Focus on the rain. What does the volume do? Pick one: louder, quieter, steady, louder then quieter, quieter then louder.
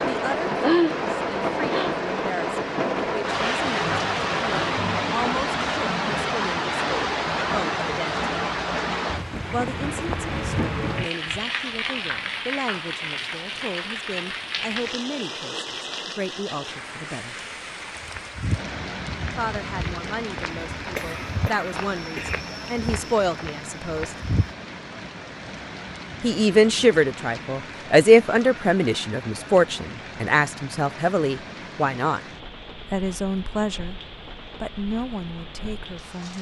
quieter.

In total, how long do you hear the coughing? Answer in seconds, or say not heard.
2 s.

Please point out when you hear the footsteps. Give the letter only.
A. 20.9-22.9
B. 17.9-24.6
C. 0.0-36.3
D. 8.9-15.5
B.